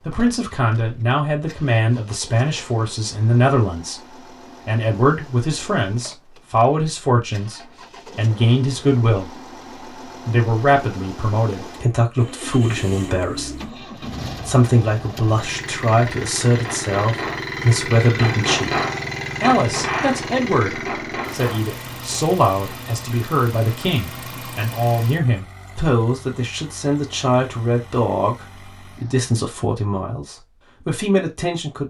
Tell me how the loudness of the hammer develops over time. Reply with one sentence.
The volume of the hammer goes up, then down.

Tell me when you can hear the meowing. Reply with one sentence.
The meowing can't be heard in this clip.